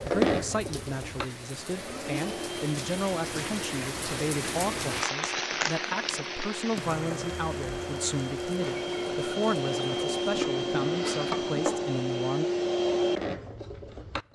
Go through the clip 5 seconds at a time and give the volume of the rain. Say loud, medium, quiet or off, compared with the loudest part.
loud, loud, off.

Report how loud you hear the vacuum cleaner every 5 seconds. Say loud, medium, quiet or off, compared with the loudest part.
loud, medium, loud.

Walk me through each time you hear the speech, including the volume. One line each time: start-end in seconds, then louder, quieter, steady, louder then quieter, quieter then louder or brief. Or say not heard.
0.0-12.4 steady.